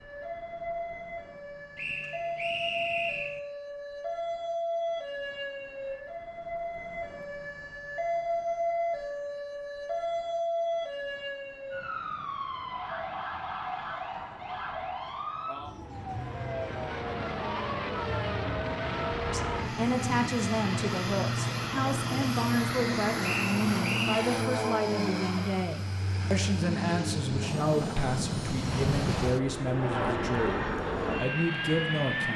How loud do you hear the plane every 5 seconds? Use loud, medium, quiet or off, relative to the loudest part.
off, off, off, loud, loud, loud, loud.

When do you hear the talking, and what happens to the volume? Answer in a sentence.
The talking can be heard from 19.2 to 32.3 s, at a steady volume.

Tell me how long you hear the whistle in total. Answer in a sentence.
You can hear the whistle for 3 seconds altogether.